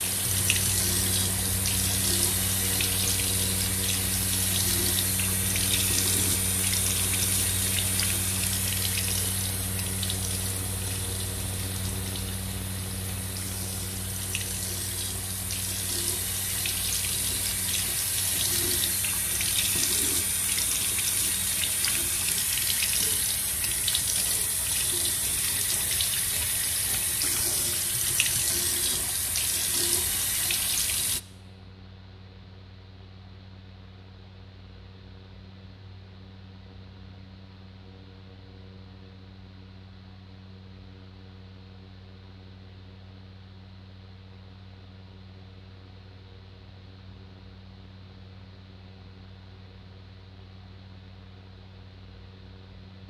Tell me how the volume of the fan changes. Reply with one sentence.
The loudness of the fan goes down.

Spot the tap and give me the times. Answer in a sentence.
You can hear the tap from 0.0 to 31.2 s.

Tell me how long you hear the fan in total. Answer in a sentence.
You can hear the fan for 53 seconds altogether.